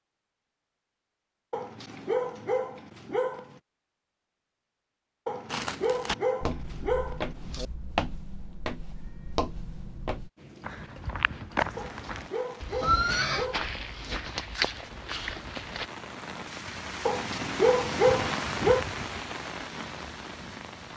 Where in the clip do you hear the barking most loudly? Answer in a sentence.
The loudest moment of the barking is at 18 seconds.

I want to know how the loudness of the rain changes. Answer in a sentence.
The loudness of the rain goes up.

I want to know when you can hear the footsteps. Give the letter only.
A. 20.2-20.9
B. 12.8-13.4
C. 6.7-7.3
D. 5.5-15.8
D.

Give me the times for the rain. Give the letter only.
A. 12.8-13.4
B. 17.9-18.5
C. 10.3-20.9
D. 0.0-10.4
C.